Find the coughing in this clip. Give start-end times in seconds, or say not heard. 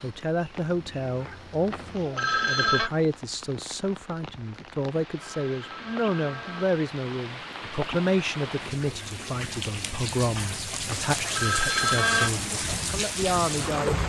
not heard.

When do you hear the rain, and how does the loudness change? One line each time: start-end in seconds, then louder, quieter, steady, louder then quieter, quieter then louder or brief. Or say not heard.
0.0-14.0 louder.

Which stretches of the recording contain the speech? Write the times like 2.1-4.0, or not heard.
0.0-14.0.